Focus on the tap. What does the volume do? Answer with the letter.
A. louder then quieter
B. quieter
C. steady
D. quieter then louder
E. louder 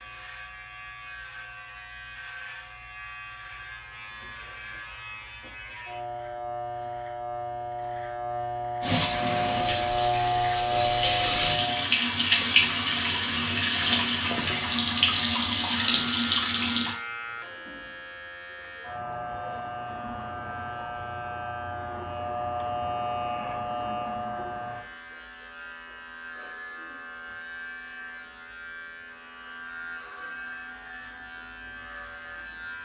E.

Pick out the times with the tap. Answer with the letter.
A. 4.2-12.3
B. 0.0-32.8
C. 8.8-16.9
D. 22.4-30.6
C.